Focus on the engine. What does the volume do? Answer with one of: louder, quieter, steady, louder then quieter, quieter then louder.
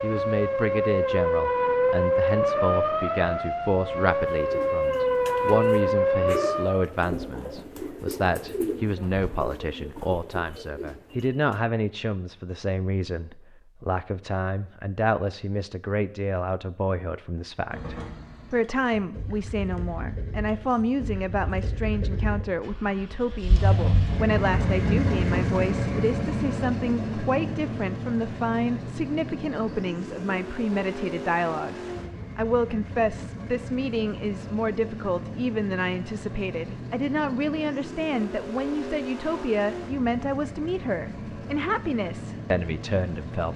louder then quieter.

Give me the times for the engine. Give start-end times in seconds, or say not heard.
17.7-43.5.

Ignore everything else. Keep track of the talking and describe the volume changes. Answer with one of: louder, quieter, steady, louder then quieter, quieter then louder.
steady.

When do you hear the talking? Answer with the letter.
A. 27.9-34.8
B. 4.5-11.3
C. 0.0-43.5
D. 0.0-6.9
C.